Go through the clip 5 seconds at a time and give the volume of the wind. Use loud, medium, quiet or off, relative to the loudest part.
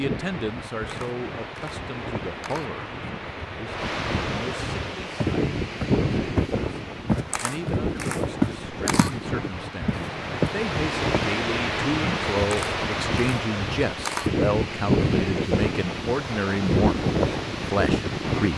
medium, loud, loud, loud.